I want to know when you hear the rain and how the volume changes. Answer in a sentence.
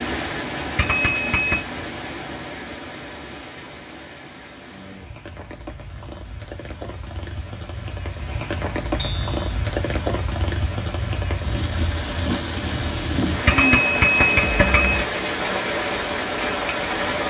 The rain can be heard from 0.0 to 17.2 s, getting quieter then louder.